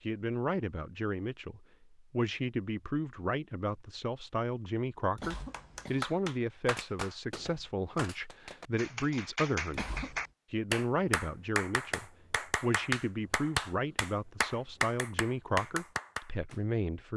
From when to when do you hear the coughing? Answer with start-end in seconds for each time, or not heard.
5.2-6.0, 9.7-10.3.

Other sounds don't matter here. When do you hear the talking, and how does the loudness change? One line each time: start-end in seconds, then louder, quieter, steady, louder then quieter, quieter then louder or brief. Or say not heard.
0.0-17.1 steady.